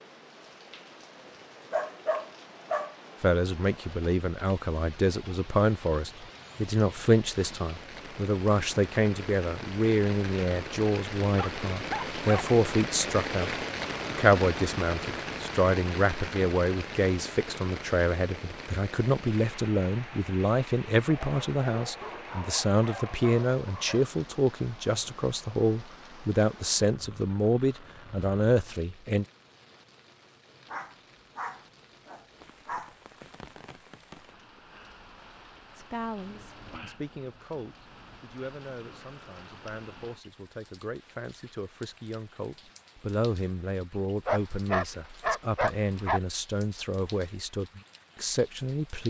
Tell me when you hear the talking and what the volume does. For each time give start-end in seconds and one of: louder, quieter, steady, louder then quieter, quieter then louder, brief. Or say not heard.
3.2-29.2 steady
35.8-49.0 louder.